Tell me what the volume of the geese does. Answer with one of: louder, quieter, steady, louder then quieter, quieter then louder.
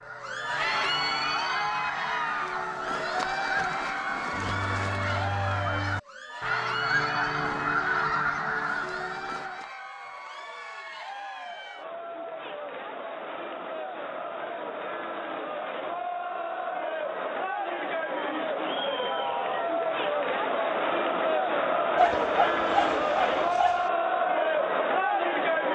louder.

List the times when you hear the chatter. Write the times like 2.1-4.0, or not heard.
0.0-25.7.